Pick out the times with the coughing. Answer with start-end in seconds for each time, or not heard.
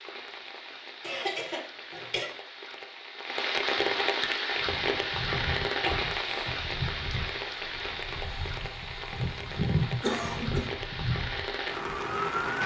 1.0-2.3, 5.8-6.5, 9.2-10.7.